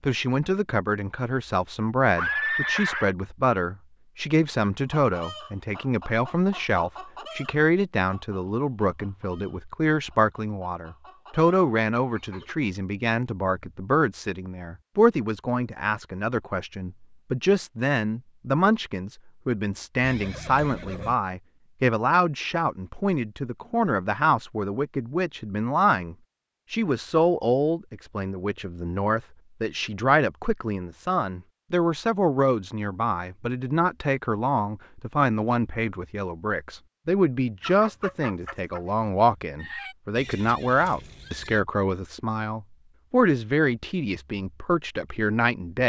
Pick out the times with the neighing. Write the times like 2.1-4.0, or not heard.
2.1-3.1, 20.0-21.1, 40.1-41.6.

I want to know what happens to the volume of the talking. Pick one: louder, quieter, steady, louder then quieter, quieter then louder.
steady.